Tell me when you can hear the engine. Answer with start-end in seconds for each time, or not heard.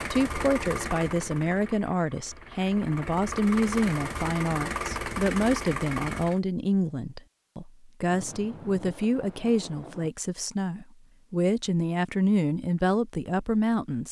0.0-6.4.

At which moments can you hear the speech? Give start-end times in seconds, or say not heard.
0.1-14.0.